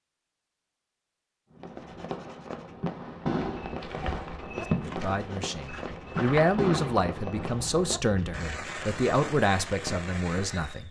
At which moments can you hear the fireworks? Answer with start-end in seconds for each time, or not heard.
1.6-10.8.